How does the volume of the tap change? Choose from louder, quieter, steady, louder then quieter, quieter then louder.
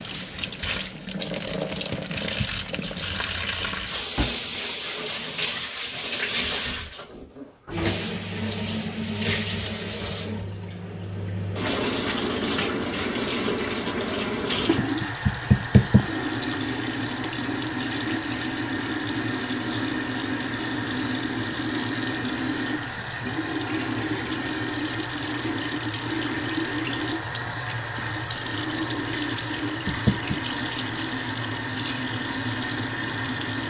steady.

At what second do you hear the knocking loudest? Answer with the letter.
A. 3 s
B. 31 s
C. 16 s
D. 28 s
C.